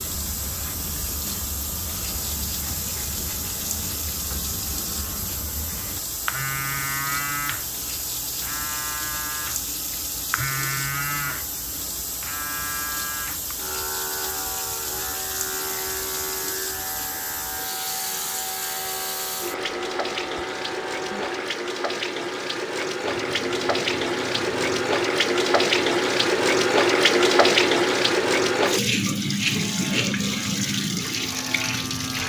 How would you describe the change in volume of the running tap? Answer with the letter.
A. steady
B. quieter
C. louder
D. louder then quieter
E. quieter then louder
C.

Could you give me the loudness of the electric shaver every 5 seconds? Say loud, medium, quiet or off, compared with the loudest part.
medium, loud, loud, loud, loud, medium, loud.